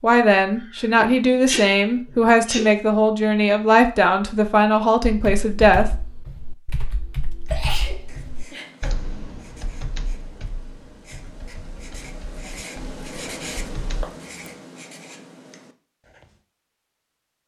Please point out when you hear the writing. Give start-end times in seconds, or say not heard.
7.5-16.4.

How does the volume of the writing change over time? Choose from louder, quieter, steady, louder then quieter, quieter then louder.
louder then quieter.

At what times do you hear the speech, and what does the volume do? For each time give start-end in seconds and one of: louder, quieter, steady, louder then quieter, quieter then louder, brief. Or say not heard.
0.0-5.9 steady.